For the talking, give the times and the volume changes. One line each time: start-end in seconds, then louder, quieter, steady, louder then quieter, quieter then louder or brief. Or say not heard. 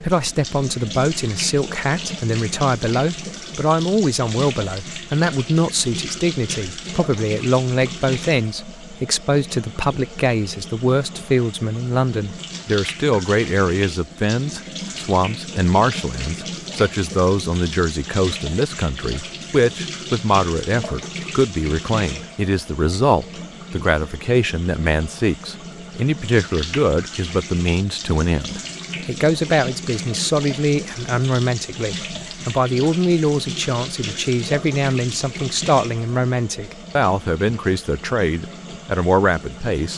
0.0-39.9 steady.